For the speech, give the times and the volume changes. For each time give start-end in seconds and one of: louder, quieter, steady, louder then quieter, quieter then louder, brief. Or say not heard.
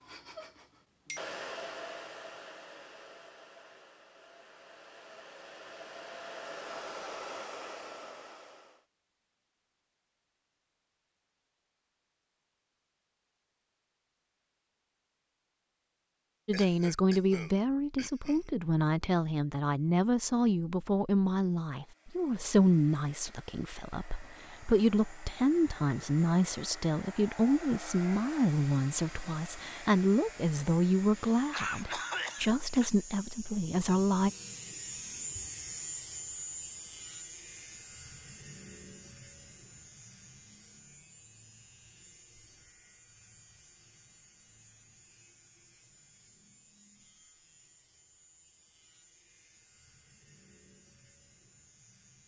16.4-34.3 steady.